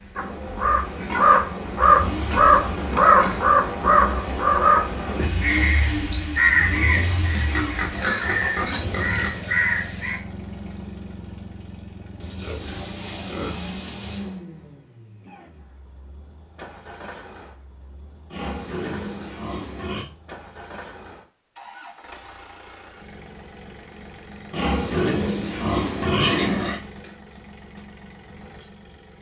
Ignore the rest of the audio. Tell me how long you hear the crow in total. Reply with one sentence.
The crow can be heard for 10 seconds in total.